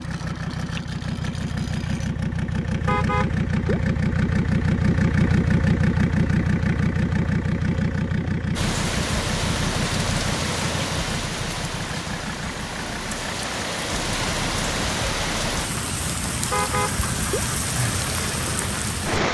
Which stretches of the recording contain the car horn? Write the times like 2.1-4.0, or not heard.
2.9-3.8, 16.5-17.4.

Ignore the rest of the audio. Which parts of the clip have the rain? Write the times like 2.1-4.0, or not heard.
8.6-19.2.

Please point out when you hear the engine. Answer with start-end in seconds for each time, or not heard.
0.0-19.2.